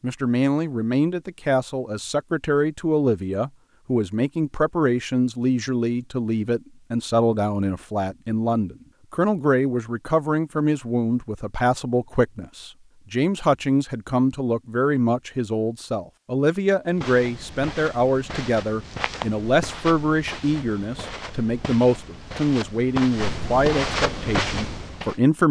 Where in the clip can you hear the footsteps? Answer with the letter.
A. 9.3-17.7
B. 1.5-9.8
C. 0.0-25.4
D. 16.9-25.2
D.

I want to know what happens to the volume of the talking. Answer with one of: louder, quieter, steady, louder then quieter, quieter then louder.
steady.